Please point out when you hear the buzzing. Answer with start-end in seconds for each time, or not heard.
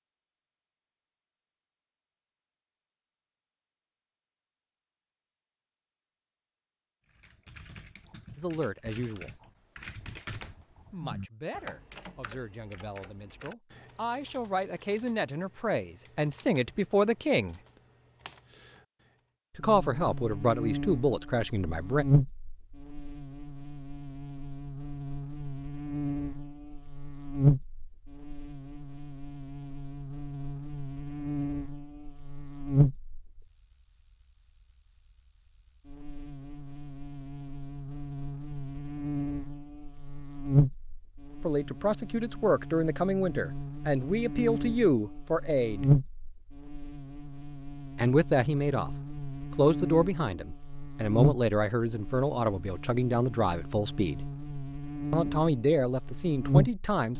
19.6-57.1.